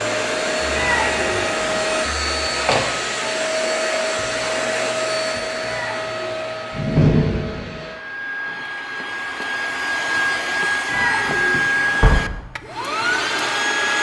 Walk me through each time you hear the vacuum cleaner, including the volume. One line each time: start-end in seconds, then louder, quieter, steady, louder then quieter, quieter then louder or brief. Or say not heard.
0.0-13.9 quieter then louder.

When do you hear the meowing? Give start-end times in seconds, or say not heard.
0.7-1.9, 5.6-6.8, 10.8-12.2.